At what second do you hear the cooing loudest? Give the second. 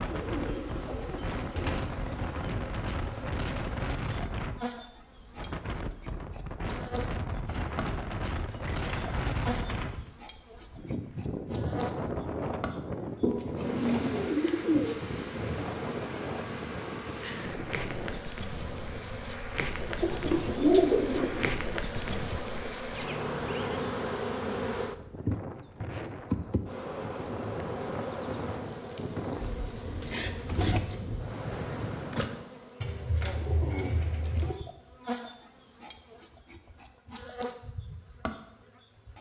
21 s.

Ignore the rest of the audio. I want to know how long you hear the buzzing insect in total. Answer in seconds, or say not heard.
39 s.